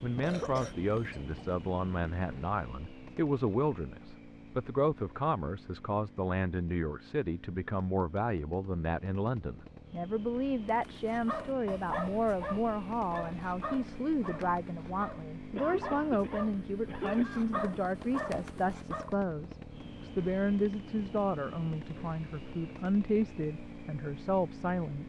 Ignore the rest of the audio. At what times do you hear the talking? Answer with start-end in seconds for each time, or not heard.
0.0-25.0.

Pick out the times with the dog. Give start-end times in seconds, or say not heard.
10.7-19.1.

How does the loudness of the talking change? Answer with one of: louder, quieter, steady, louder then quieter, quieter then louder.
steady.